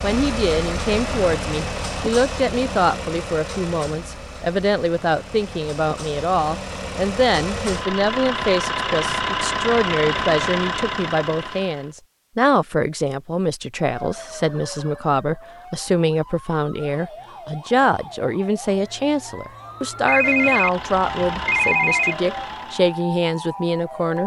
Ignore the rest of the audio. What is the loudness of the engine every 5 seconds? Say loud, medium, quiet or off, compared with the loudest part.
loud, loud, loud, off, medium.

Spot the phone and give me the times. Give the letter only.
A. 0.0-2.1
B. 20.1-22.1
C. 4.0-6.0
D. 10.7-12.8
B.